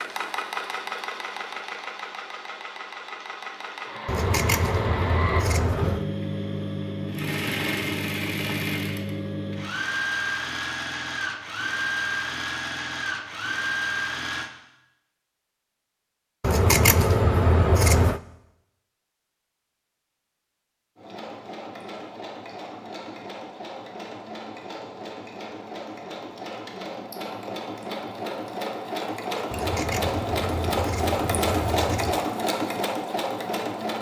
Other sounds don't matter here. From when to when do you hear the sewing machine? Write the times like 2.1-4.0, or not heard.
0.0-14.5, 20.9-33.9.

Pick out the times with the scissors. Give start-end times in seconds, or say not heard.
4.0-6.0, 16.4-18.2, 29.5-32.2.